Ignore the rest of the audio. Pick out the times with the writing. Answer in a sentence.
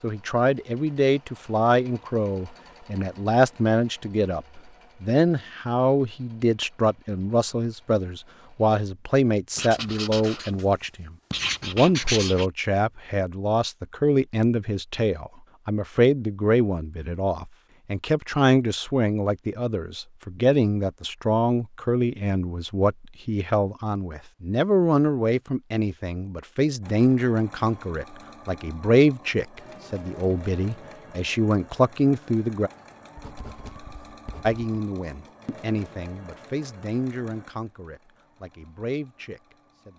The writing can be heard from 9.6 to 10.7 s, from 11.3 to 12.5 s and from 33.1 to 34.6 s.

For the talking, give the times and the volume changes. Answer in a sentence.
You can hear the talking from 0.0 to 32.7 s, at a steady volume; and from 34.4 to 39.9 s, getting quieter then louder.